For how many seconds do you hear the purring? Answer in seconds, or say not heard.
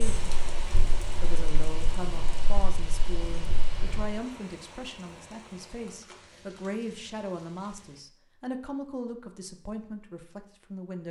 4 s.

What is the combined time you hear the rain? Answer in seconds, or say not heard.
8 s.